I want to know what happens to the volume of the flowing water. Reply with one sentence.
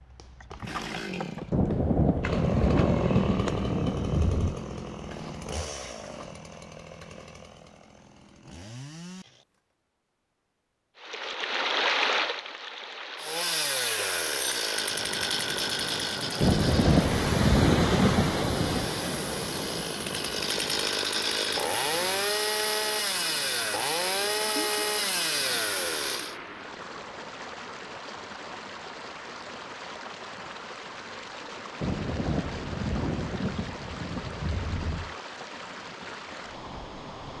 The volume of the flowing water goes down.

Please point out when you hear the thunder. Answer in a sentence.
The thunder can be heard from 1.5 to 4.5 s, from 16.4 to 18.9 s and from 31.8 to 35.1 s.